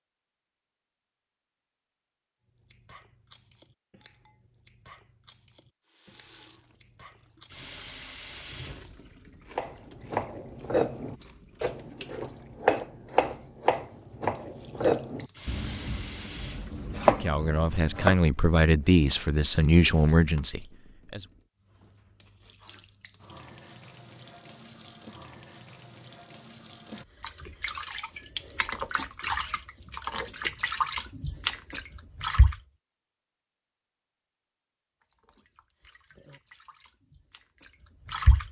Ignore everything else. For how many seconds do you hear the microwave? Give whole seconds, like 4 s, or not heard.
not heard.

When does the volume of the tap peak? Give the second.
31 s.